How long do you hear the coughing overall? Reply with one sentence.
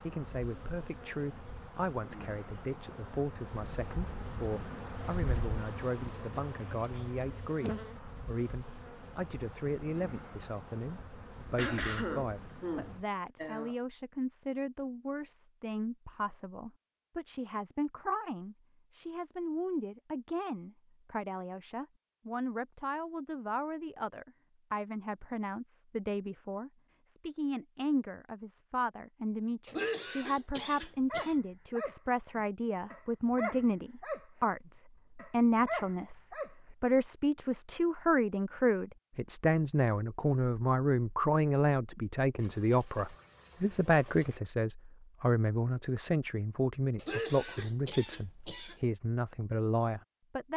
You can hear the coughing for 6 seconds altogether.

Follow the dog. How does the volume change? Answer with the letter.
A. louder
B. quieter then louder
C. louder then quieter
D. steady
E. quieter
B.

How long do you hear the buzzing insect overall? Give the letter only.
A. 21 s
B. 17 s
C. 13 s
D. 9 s
C.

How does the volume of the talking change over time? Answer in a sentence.
The loudness of the talking goes up.